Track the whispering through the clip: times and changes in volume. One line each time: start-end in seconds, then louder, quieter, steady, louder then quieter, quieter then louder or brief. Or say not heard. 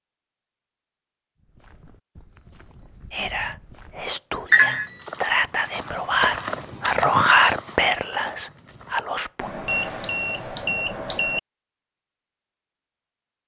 3.1-9.5 louder then quieter.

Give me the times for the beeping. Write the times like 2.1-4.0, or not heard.
4.5-4.9, 9.4-11.4.